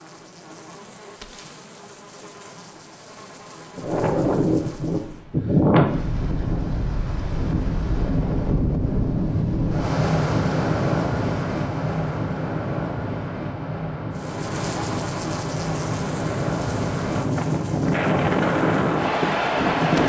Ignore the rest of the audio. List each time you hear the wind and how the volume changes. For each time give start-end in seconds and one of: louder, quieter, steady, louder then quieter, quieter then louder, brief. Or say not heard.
3.8-20.0 quieter then louder.